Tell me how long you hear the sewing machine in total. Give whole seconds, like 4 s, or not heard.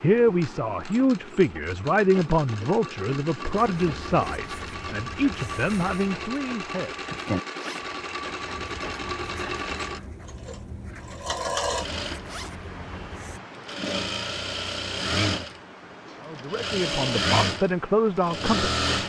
19 s.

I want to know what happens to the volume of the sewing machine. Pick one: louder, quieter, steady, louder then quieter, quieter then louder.
louder.